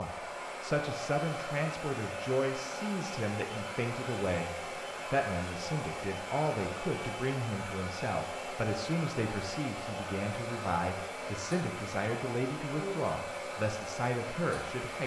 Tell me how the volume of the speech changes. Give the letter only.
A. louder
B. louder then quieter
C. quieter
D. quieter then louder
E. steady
E.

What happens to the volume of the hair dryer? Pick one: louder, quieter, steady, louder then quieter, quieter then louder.
steady.